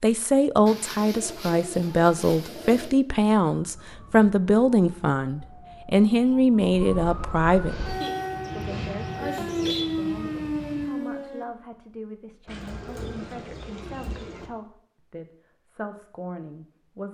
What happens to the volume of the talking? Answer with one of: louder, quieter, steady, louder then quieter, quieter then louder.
quieter.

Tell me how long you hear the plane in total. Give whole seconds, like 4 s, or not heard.
3 s.